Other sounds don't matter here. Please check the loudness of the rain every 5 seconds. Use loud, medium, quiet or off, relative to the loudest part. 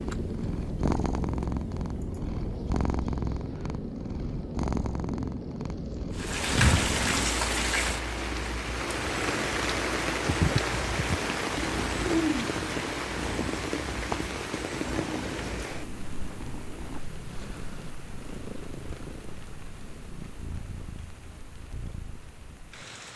off, loud, loud, quiet, quiet.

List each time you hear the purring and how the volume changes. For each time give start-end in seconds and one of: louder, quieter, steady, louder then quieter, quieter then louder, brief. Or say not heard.
0.0-23.1 quieter.